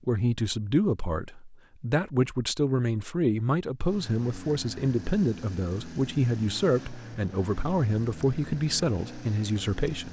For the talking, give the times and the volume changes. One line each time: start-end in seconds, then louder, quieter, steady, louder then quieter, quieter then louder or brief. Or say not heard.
0.1-10.0 steady.